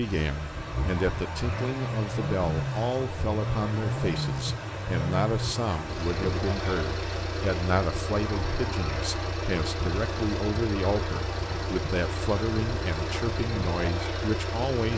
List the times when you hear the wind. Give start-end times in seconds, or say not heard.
0.0-14.9.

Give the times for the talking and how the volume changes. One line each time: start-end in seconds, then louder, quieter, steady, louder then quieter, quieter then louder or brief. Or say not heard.
0.0-14.9 steady.